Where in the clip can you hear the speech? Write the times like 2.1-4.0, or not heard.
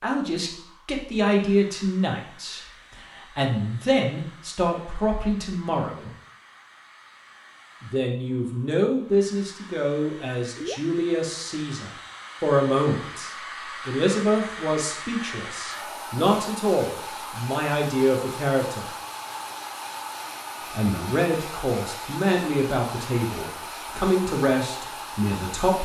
0.0-6.1, 7.8-18.9, 20.7-25.7.